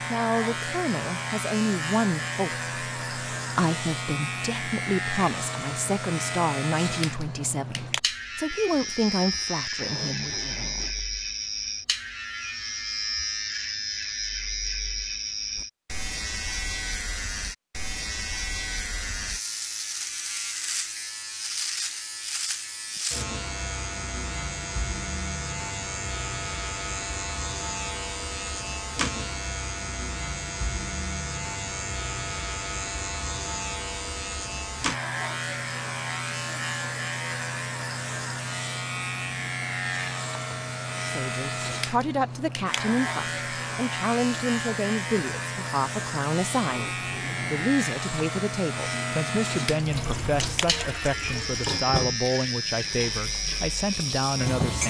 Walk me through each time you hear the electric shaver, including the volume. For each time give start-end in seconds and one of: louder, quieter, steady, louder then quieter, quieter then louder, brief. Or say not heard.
0.0-54.8 steady.